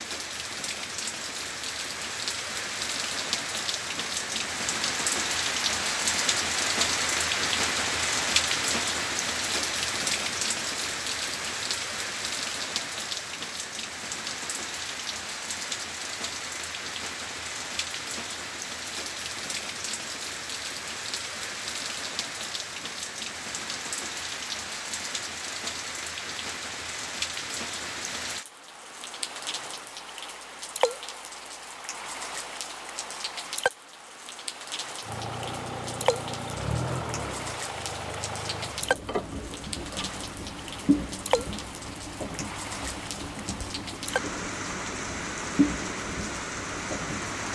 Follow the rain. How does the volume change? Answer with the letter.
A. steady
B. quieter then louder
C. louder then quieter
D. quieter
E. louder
D.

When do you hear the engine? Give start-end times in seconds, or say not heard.
35.0-47.5.